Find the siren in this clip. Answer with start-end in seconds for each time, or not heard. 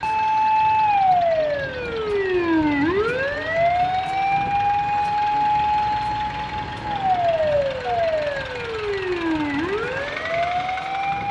0.0-11.2.